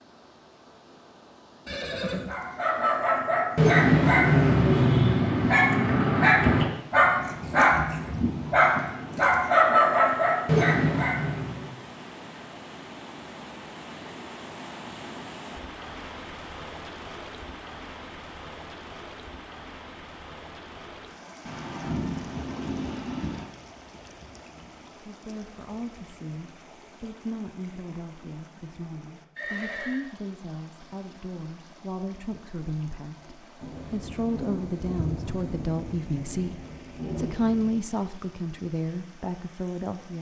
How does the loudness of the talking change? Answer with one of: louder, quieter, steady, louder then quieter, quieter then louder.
louder.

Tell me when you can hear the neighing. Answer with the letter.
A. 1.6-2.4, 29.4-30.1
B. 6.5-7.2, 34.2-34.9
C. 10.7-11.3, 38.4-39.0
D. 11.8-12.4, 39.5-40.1
A.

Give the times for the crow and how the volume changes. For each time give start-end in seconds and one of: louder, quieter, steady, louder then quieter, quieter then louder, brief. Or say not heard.
not heard.